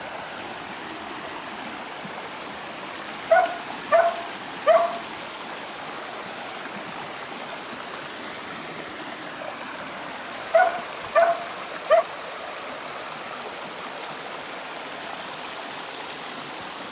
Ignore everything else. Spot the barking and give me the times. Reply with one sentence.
You can hear the barking from 3.3 to 5.0 s and from 10.5 to 12.1 s.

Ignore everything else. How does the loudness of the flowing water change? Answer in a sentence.
The loudness of the flowing water stays about the same.